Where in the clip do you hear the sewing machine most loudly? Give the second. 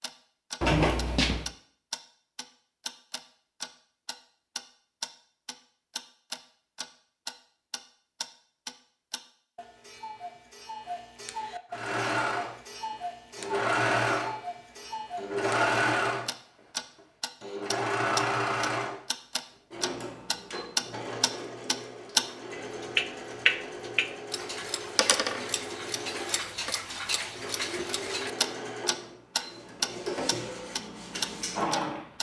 16 s.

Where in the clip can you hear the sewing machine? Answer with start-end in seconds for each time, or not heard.
11.7-32.1.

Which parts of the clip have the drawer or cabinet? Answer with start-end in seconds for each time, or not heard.
0.6-1.5.